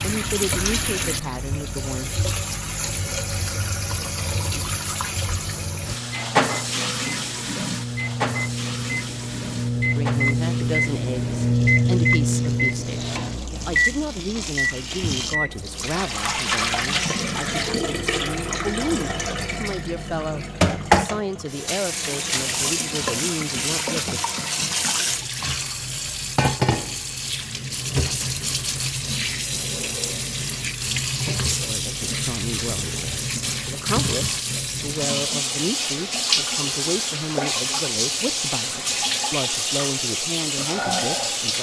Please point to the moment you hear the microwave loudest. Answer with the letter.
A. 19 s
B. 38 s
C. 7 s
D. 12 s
D.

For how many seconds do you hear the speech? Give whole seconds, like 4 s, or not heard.
26 s.